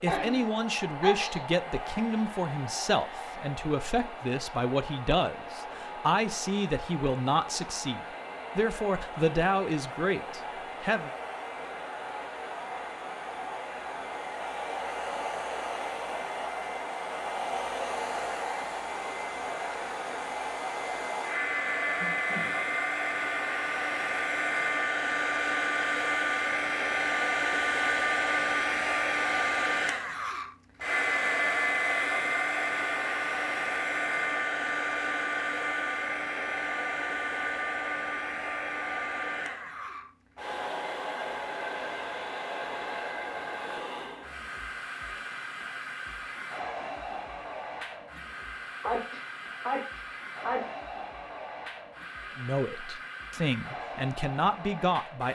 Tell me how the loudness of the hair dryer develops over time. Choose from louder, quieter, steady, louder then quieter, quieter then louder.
louder then quieter.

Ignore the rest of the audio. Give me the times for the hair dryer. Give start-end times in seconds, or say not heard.
0.1-55.2.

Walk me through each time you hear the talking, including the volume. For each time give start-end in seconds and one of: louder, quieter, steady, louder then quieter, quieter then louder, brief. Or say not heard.
0.0-11.1 steady
52.4-55.2 brief.